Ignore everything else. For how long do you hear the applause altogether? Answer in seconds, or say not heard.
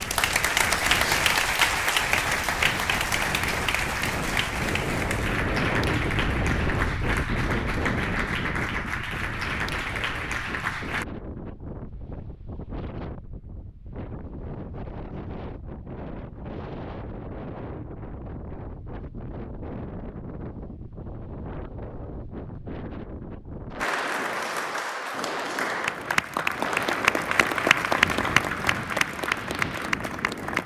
18 s.